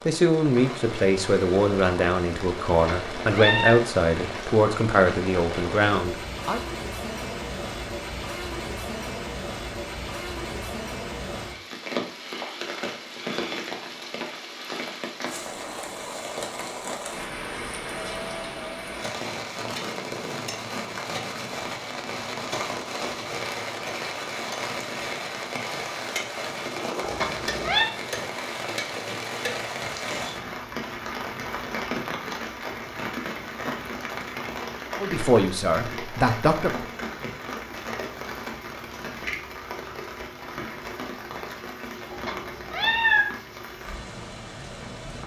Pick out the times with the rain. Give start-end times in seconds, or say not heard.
0.0-45.2.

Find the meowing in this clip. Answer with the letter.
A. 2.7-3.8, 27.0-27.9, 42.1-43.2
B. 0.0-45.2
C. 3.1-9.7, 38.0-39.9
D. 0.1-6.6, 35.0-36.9
A.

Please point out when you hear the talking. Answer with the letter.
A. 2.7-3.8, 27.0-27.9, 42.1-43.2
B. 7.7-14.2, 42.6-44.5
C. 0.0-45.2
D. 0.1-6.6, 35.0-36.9
D.